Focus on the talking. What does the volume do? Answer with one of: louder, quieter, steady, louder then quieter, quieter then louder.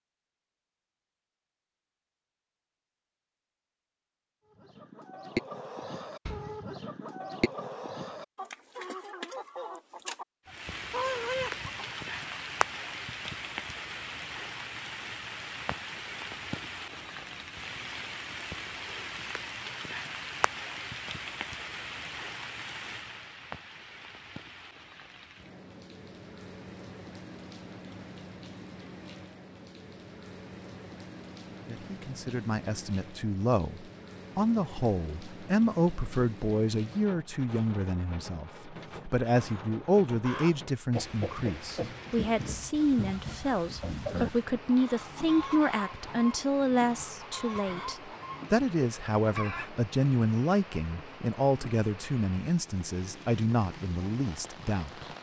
steady.